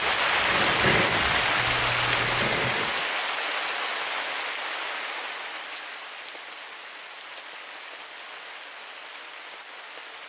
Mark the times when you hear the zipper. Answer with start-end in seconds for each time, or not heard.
not heard.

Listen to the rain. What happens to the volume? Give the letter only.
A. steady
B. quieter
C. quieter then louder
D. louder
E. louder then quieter
B.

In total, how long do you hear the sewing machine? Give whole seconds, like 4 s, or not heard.
3 s.